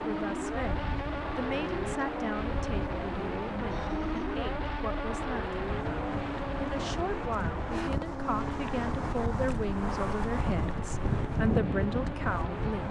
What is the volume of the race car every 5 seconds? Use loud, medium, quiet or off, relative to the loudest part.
loud, loud, medium.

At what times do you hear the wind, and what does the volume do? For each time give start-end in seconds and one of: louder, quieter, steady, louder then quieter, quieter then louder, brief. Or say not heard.
0.0-12.8 louder.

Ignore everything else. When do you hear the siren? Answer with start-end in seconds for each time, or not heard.
not heard.